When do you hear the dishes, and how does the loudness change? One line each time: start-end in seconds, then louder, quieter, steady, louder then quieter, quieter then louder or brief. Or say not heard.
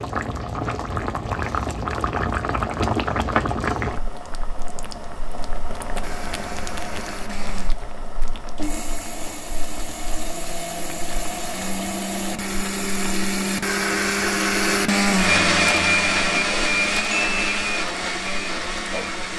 not heard.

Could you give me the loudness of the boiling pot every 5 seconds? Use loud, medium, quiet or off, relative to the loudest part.
loud, medium, quiet, quiet.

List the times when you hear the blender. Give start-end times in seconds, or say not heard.
5.9-19.3.